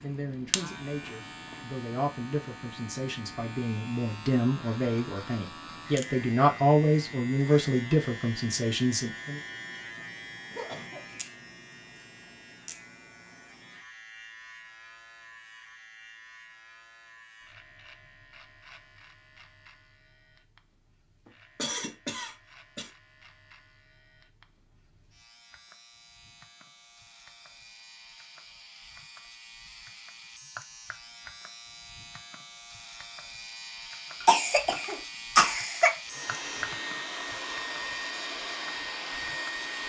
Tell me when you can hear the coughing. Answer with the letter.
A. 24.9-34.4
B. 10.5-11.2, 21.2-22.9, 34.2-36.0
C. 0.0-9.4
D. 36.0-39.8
B.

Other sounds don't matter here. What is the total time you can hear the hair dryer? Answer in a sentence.
You can hear the hair dryer for 4 seconds altogether.